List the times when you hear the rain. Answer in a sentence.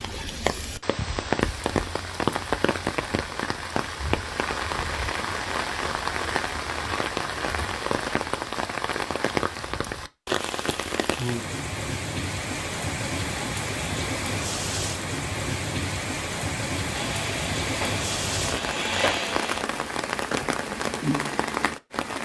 You can hear the rain from 0.0 to 22.2 s.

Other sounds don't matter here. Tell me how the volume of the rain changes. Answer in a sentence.
The volume of the rain stays about the same.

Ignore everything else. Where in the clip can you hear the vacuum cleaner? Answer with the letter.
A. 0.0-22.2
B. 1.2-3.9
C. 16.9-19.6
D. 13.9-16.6
C.